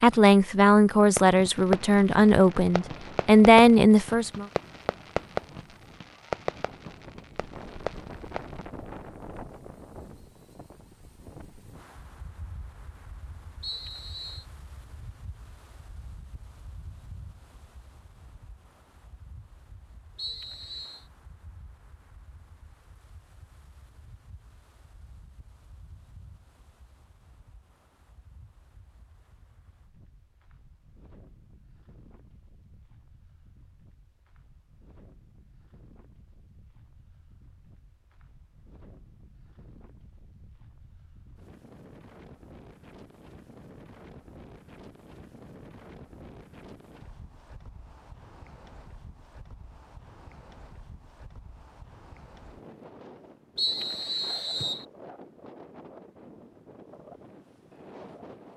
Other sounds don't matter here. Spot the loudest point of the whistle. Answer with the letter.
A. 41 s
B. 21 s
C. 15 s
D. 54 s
D.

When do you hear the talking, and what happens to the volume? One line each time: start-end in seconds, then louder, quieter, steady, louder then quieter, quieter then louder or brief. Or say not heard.
0.0-4.5 quieter then louder.